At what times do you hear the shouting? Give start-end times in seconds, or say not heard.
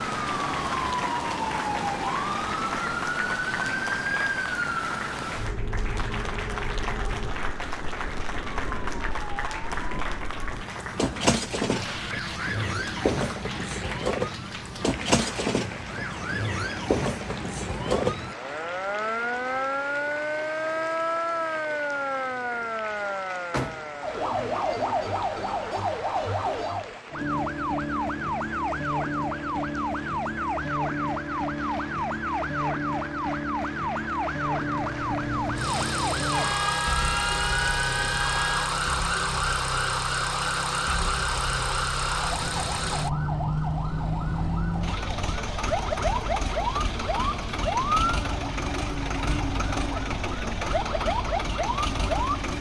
not heard.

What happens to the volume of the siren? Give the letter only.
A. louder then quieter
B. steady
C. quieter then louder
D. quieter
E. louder
B.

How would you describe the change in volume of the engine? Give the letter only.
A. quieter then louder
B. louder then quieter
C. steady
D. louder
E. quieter
C.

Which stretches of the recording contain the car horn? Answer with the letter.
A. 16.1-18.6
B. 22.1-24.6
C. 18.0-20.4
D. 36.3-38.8
D.